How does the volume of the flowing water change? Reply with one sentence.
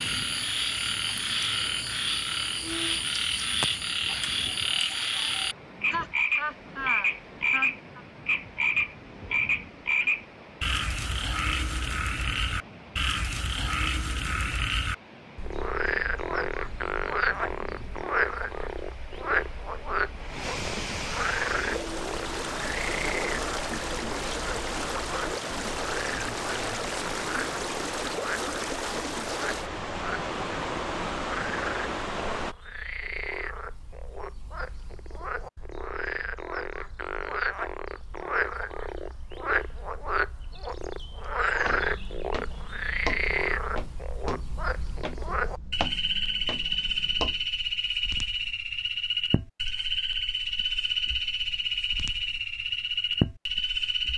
The loudness of the flowing water goes up.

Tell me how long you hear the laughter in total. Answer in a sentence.
You can hear the laughter for 2 seconds altogether.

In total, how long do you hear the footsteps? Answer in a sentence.
You can hear the footsteps for 6 seconds altogether.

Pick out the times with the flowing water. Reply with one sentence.
You can hear the flowing water from 0.0 to 32.5 s.